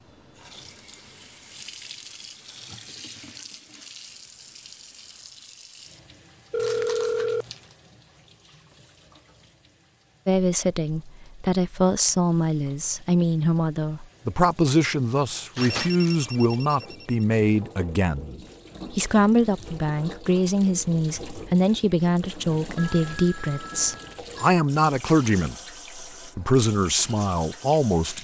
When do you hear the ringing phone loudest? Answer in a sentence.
The volume of the ringing phone peaks at 7 seconds.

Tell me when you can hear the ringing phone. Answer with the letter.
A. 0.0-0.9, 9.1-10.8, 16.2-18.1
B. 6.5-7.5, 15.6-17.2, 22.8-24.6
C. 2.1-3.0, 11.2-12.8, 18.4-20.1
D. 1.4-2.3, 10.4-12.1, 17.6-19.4
B.